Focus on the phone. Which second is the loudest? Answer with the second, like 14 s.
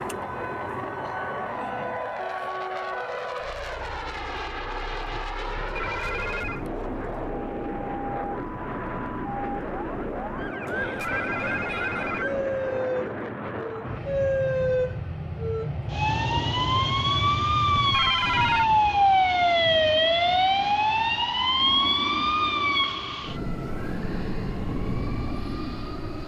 18 s.